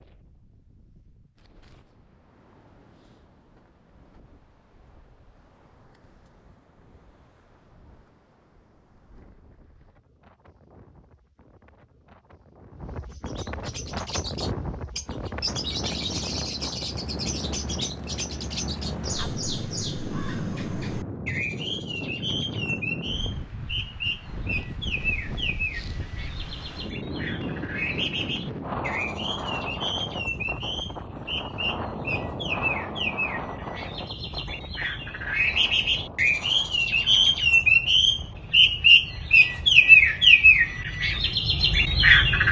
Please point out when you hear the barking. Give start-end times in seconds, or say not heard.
not heard.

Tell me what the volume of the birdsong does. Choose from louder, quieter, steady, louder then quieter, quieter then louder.
louder.